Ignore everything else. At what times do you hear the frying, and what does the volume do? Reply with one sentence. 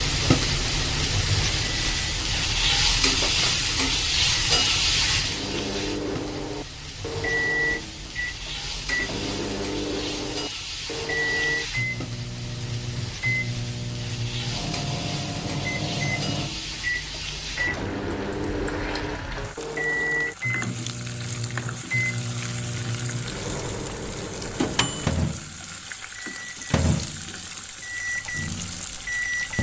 The frying can be heard from 0.0 to 29.5 s, getting quieter.